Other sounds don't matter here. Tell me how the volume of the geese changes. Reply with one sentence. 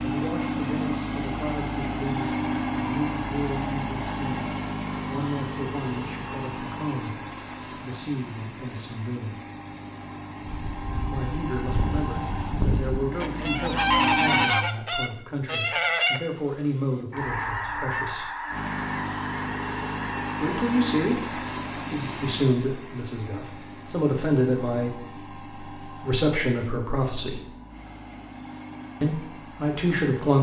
The volume of the geese goes up, then down.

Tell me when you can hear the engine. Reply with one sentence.
You can hear the engine from 0.0 to 14.5 s and from 18.5 to 30.3 s.